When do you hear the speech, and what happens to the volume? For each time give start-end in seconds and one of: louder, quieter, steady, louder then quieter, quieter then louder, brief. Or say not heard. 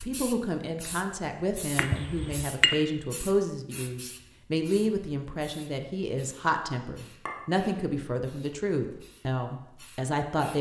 0.0-10.5 steady.